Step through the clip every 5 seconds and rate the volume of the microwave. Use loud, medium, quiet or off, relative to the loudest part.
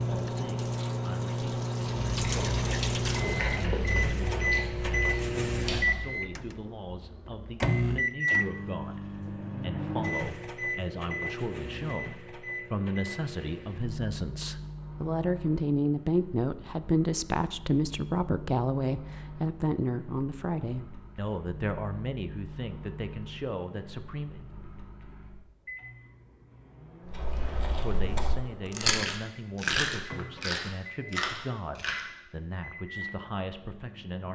loud, loud, medium, quiet, quiet, quiet, quiet.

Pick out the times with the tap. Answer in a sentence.
The tap can be heard from 0.0 to 3.6 s.